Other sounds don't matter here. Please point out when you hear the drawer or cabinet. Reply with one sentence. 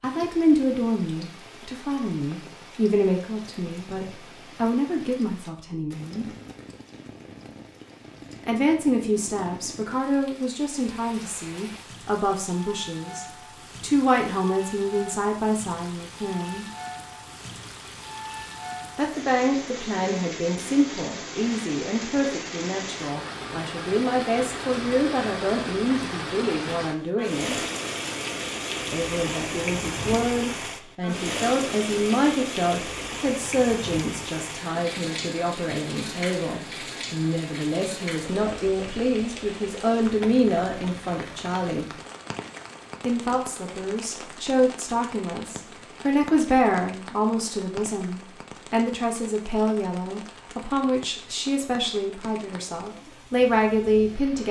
The drawer or cabinet can't be heard in this clip.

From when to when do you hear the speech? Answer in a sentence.
You can hear the speech from 0.0 to 6.3 s, from 8.4 to 16.6 s, from 18.9 to 27.6 s, from 28.9 to 41.9 s and from 43.0 to 54.4 s.